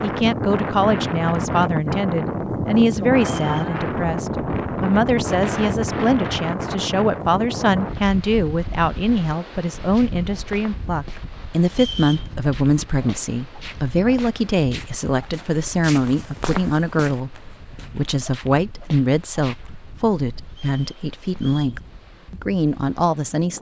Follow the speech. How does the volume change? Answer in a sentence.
The volume of the speech stays about the same.